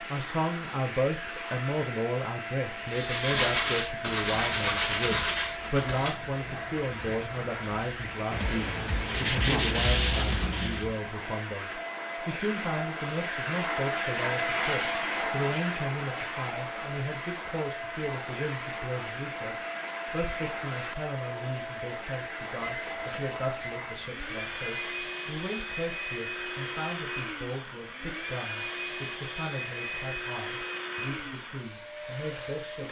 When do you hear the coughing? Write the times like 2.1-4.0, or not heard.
not heard.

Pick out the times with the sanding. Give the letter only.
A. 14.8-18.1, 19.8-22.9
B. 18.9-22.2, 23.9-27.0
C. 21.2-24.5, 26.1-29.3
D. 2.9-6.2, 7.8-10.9
D.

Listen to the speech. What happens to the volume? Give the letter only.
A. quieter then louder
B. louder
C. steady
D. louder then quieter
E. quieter
E.